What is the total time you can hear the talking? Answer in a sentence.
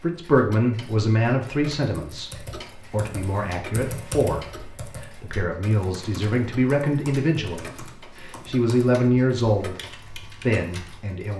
You can hear the talking for 11 seconds altogether.